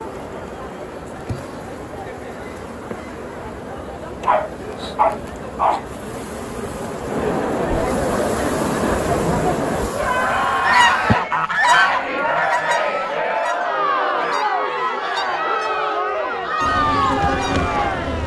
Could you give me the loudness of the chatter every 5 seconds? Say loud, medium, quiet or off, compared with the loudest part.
quiet, loud, loud, loud.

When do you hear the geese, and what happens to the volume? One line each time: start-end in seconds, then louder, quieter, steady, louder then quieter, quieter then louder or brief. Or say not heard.
10.6-17.7 quieter.